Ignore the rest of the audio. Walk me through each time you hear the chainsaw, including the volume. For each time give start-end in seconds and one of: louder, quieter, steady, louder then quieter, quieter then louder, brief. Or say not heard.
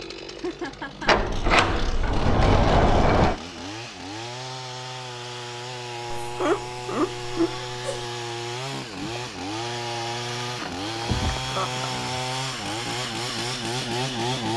0.0-14.5 louder.